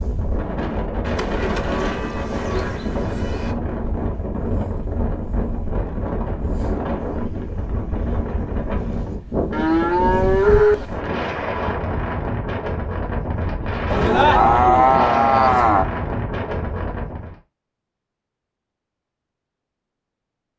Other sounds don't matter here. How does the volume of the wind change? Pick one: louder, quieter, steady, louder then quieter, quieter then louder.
steady.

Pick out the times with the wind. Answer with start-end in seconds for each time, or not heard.
0.0-17.4.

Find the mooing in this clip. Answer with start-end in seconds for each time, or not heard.
1.0-3.5, 9.5-10.8, 13.9-15.8.